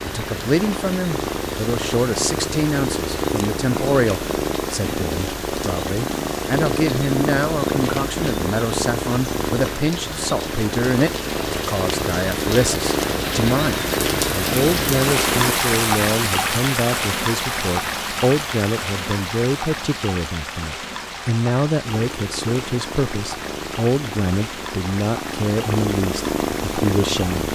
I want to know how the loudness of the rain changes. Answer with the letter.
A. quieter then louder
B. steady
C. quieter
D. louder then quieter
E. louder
D.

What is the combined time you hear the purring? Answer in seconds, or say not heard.
21 s.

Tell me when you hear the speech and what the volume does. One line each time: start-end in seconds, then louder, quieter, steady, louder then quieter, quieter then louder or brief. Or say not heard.
0.0-27.5 steady.